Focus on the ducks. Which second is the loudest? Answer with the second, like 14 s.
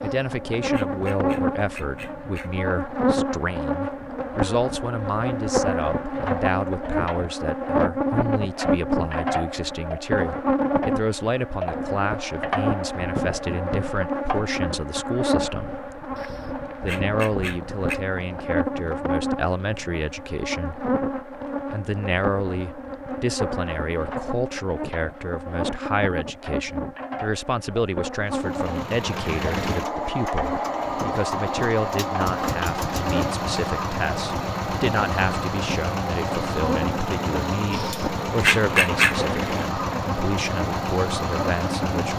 39 s.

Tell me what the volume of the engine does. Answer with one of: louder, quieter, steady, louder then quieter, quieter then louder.
steady.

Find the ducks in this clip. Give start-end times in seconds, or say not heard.
0.0-2.5, 16.1-18.0, 37.7-39.2.